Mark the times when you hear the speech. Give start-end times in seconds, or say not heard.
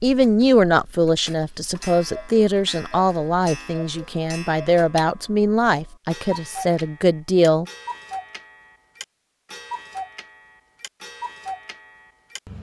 0.0-7.7.